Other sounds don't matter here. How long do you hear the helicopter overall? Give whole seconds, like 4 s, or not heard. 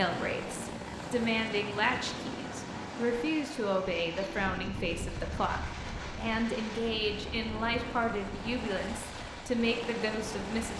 11 s.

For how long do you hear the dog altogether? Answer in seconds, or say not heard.
not heard.